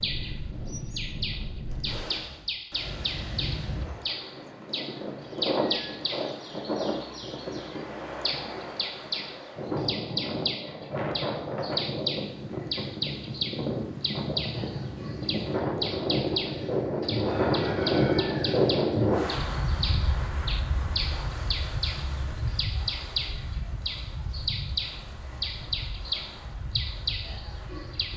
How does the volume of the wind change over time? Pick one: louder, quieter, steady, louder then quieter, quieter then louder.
louder then quieter.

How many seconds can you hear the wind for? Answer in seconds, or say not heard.
28 s.